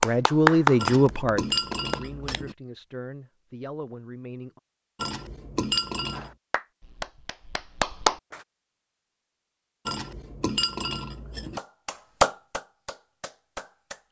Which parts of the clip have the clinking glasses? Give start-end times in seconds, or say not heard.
0.8-2.5, 5.0-6.3, 9.8-11.6.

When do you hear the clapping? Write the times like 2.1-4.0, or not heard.
0.0-2.4, 6.2-8.3, 11.6-14.0.